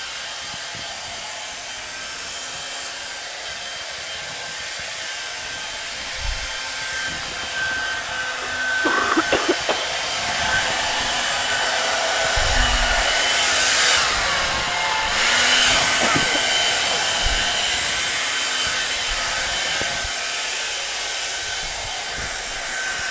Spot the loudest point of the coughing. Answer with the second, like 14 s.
9 s.